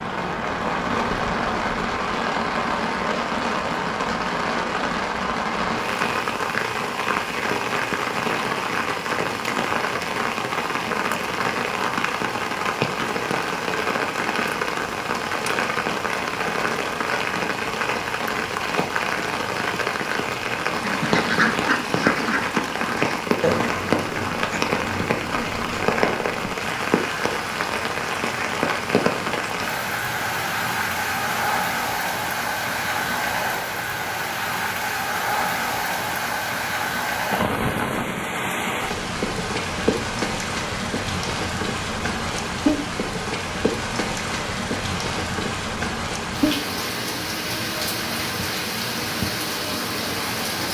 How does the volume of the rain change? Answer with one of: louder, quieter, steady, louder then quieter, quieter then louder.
steady.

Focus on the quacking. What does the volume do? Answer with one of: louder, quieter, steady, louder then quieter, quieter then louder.
quieter.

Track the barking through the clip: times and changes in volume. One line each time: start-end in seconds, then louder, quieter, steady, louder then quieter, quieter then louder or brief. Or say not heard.
not heard.